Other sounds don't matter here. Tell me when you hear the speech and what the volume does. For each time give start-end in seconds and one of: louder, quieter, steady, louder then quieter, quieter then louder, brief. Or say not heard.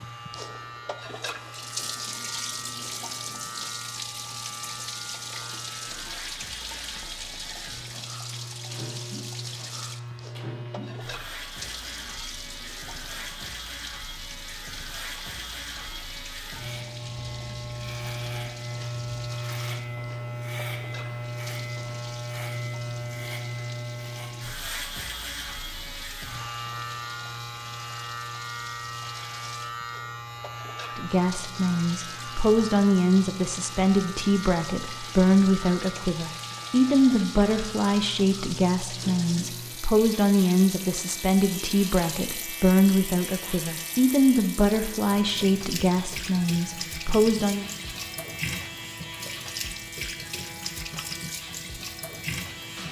30.9-47.6 steady.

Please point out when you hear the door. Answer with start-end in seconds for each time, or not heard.
not heard.